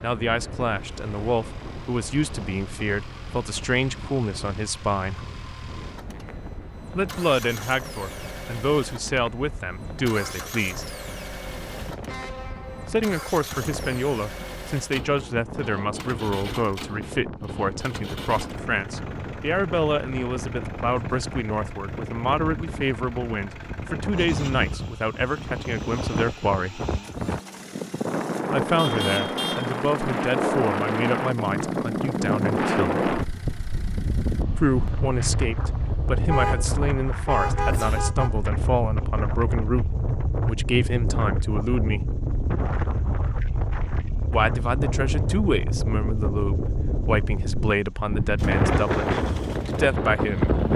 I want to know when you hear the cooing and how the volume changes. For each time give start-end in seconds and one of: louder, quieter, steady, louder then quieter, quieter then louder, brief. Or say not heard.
not heard.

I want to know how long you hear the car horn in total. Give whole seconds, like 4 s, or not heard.
4 s.